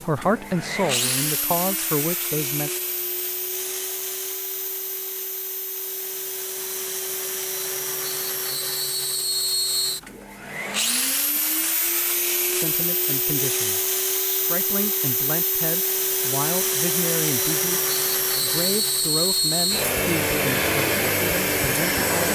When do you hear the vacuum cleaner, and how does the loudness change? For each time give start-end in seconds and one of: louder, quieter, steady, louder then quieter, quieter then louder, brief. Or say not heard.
0.0-22.3 louder.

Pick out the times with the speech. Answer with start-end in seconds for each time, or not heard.
0.0-2.7, 12.4-22.3.